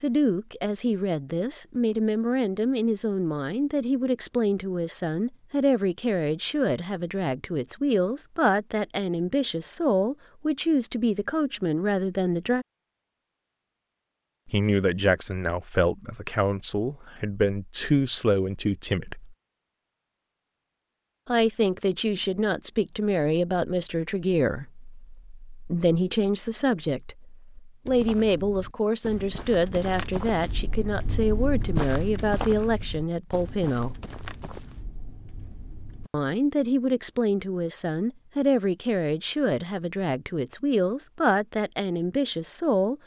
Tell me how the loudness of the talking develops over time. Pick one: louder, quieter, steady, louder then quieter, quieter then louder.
steady.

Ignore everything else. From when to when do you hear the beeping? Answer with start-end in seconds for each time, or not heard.
not heard.